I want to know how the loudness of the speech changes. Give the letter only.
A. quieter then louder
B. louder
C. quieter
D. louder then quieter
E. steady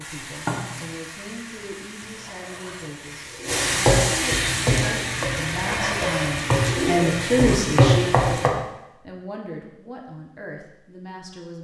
D.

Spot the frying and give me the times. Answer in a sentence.
The frying can be heard from 0.0 to 8.5 s.